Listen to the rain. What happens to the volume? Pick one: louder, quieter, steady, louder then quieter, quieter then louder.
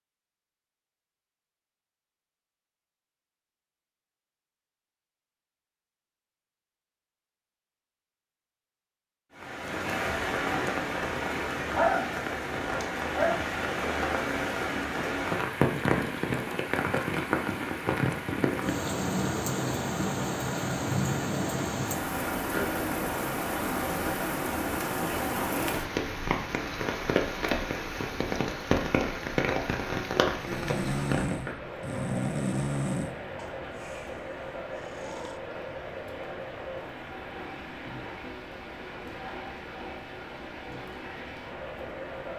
quieter.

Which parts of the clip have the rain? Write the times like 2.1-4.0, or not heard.
9.3-42.3.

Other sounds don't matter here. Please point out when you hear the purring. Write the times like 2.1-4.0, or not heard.
not heard.